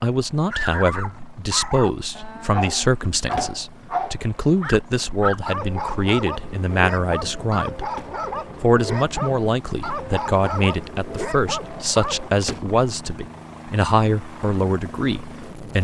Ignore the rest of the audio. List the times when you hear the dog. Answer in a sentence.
The dog can be heard from 0.5 to 12.3 s.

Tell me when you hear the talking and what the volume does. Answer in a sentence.
The talking can be heard from 0.0 to 7.9 s, at a steady volume; and from 8.6 to 15.7 s, at a steady volume.